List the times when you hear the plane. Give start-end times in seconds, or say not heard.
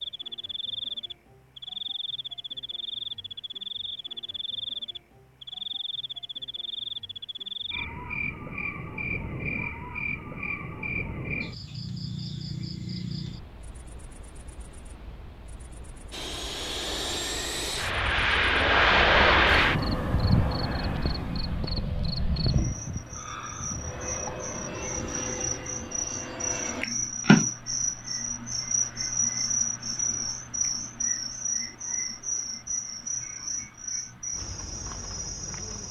16.1-26.9.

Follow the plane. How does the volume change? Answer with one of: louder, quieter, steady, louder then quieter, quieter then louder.
louder then quieter.